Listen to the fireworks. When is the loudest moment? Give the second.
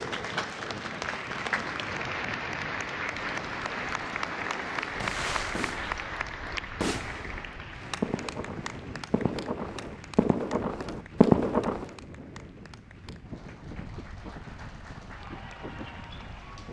11 s.